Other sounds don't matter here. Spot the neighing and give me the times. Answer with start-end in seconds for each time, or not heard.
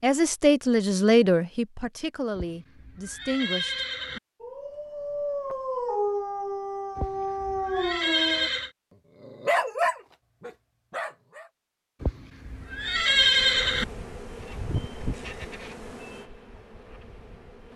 2.4-4.2, 7.0-8.7, 12.0-13.8.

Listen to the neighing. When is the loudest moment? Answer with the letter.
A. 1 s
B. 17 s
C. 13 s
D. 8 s
C.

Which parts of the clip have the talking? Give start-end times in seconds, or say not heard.
0.0-3.9.